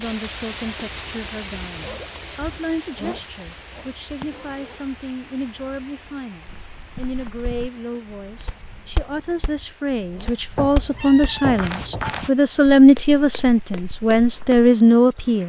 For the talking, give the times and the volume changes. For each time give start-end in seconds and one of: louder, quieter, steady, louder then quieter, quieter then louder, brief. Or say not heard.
0.0-15.4 louder.